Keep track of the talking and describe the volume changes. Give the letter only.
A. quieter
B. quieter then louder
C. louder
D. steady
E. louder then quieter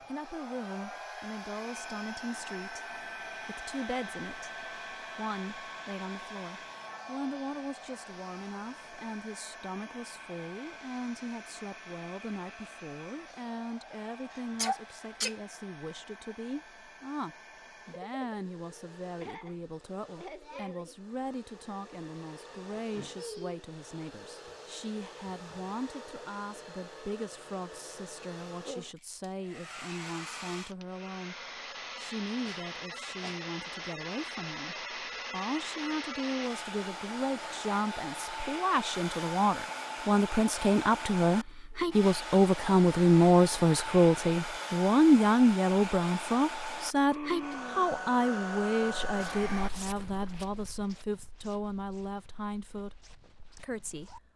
C.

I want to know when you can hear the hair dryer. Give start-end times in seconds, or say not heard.
0.0-49.7.